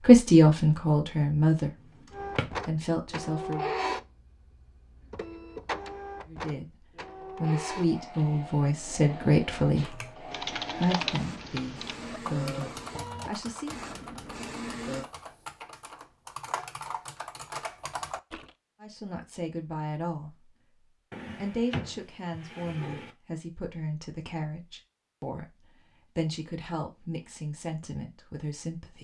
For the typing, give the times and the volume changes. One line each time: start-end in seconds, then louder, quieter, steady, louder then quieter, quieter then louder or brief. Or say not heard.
9.8-18.5 quieter then louder.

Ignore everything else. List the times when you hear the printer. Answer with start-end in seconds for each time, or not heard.
2.1-15.1.